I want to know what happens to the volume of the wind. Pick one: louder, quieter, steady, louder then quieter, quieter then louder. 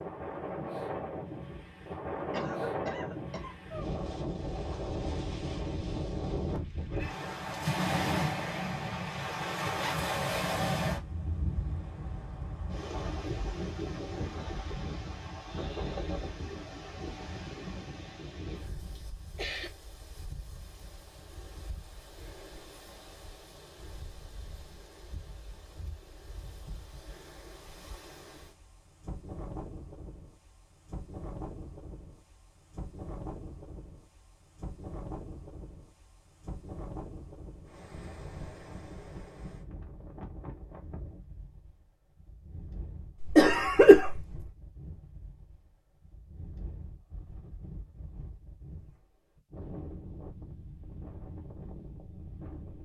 quieter.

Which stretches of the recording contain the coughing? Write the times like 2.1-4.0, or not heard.
2.3-3.5, 18.9-19.7, 43.2-44.4.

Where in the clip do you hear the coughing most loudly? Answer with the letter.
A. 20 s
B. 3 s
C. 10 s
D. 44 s
D.